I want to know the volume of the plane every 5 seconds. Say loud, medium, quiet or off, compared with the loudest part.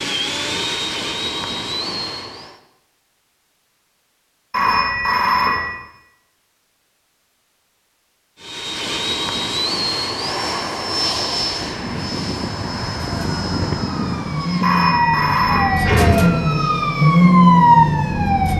loud, loud, loud, quiet.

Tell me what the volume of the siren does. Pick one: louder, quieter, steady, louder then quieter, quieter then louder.
louder.